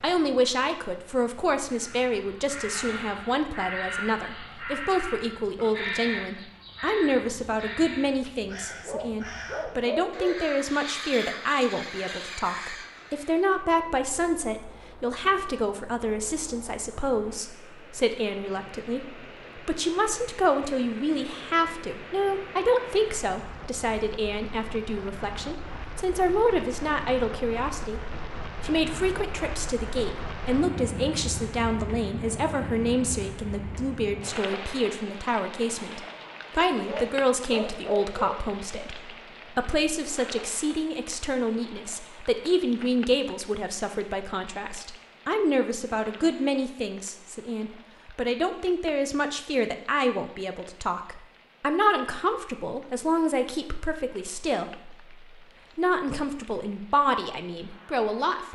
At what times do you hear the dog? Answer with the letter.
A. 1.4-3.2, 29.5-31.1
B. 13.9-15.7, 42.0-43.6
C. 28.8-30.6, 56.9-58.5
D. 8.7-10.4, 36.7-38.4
D.